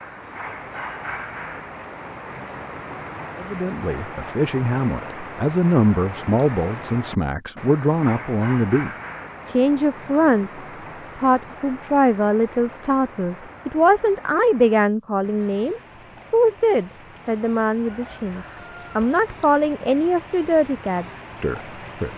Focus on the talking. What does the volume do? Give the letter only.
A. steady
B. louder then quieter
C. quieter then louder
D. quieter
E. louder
A.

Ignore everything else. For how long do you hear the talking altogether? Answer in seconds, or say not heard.
19 s.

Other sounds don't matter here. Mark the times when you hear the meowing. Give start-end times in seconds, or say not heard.
not heard.